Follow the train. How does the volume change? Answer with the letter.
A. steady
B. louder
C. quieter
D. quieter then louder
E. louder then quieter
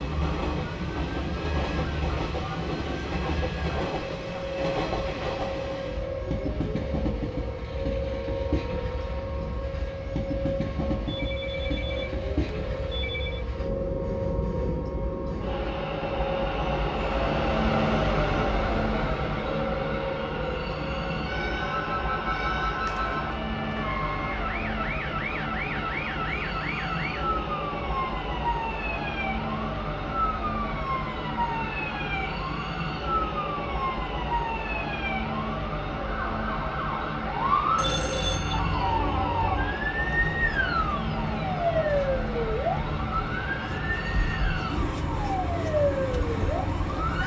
A.